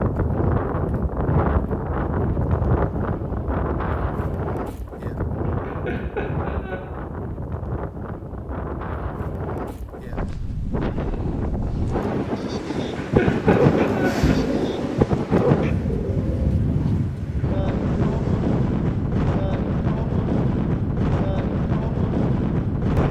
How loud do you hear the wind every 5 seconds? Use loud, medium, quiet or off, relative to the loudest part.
loud, medium, loud, loud, loud.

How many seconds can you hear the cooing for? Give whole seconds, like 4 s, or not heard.
7 s.